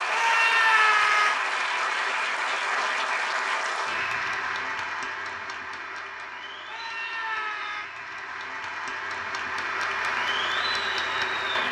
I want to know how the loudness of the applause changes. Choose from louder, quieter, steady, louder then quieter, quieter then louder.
quieter then louder.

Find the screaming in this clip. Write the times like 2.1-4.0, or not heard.
0.1-1.4, 6.7-7.9.